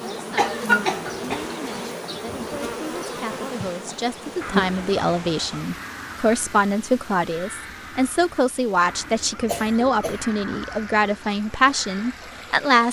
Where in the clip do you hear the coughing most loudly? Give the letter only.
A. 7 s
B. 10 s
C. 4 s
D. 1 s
D.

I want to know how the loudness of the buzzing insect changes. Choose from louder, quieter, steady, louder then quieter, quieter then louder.
quieter.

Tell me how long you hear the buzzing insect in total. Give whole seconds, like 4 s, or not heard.
5 s.